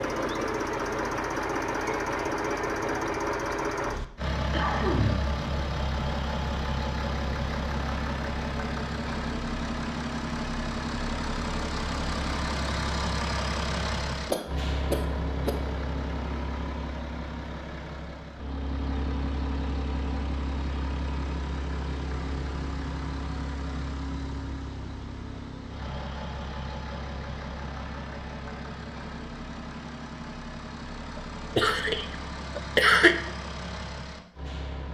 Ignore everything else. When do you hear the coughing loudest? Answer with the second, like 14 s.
33 s.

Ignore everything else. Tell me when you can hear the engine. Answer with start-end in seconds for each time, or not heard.
0.0-34.8.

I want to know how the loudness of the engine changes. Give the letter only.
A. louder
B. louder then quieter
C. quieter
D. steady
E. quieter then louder
C.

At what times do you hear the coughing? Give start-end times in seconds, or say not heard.
4.5-5.3, 14.3-15.6, 31.6-33.1.